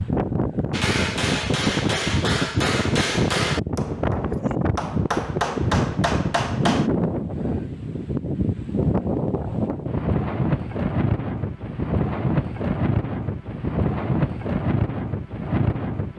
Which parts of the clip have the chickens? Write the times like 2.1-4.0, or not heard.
not heard.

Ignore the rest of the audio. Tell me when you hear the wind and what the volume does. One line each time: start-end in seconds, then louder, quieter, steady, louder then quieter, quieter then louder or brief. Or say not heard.
0.0-16.1 steady.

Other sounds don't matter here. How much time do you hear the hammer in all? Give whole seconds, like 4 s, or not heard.
6 s.